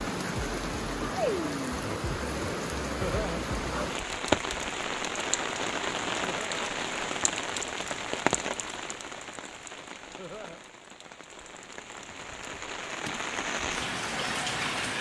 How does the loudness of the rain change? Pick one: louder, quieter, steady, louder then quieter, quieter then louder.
quieter then louder.